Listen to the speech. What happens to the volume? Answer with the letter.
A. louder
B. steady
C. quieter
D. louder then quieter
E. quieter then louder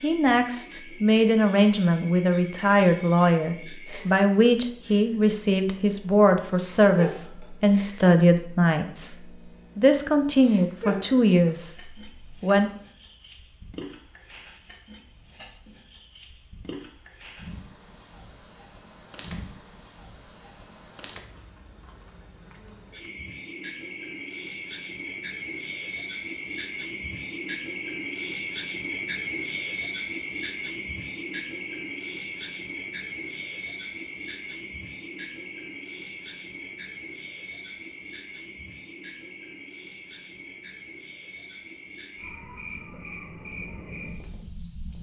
B.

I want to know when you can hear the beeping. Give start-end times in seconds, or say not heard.
not heard.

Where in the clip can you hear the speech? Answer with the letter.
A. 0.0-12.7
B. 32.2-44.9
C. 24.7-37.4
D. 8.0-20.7
A.